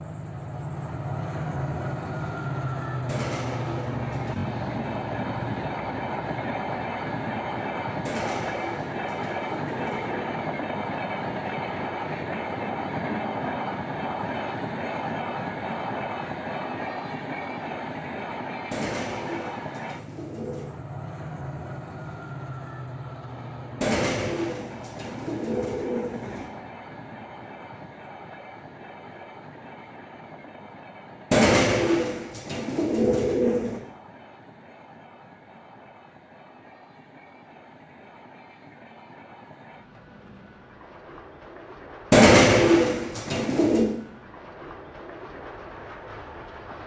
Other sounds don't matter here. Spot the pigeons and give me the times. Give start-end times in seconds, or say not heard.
3.0-4.5, 8.1-10.3, 18.7-20.7, 23.8-26.5, 31.3-33.8, 42.1-43.9.